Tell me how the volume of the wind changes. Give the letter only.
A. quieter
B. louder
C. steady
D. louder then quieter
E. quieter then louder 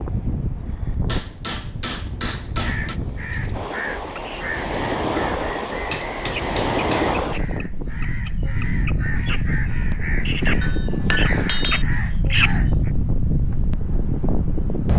B.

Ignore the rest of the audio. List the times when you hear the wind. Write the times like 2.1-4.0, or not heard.
0.0-14.9.